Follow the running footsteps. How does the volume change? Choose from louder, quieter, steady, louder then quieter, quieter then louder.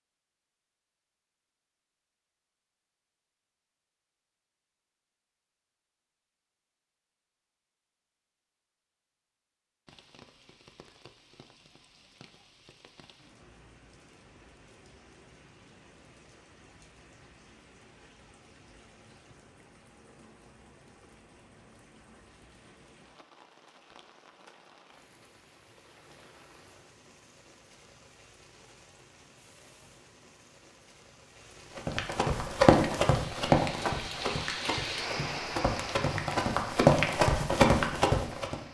quieter then louder.